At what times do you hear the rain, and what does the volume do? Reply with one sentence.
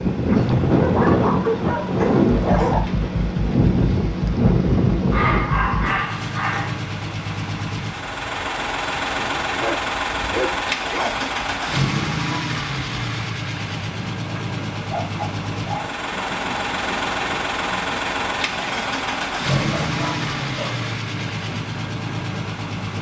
The rain can be heard from 0.0 to 22.9 s, getting quieter.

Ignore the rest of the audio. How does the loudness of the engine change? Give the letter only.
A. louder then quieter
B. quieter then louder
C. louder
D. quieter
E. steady
C.